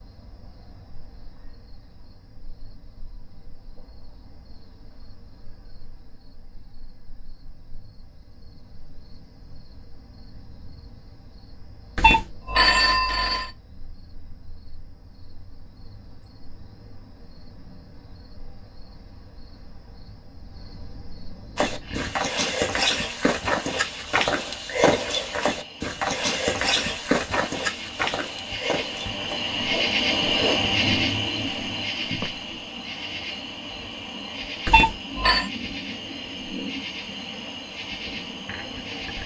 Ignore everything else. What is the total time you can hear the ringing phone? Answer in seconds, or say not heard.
2 s.